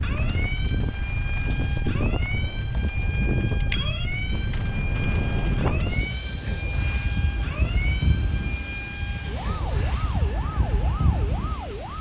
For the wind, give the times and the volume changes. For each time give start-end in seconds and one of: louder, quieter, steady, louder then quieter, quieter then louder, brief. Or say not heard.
0.0-11.9 steady.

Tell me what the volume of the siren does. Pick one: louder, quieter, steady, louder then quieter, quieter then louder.
steady.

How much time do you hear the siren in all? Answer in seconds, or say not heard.
12 s.